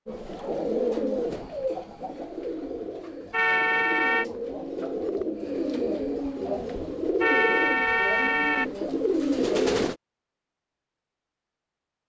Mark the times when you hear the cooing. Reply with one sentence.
You can hear the cooing from 0.1 to 9.9 s.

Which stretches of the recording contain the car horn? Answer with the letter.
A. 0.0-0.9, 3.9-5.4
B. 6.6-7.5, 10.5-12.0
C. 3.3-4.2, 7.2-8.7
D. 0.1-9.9
C.